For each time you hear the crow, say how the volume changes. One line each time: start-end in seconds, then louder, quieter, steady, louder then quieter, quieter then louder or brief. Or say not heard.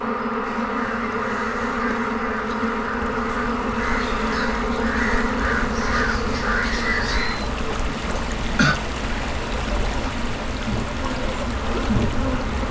0.5-7.5 louder.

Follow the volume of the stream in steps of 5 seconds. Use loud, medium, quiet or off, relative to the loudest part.
medium, loud, loud.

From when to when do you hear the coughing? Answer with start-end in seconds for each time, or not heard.
8.2-8.8.